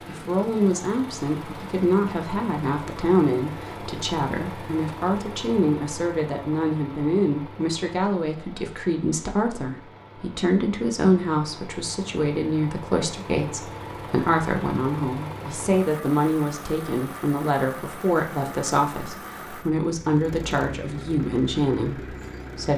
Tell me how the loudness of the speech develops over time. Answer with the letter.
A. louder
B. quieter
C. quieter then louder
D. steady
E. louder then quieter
D.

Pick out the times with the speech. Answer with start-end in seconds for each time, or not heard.
0.1-22.7.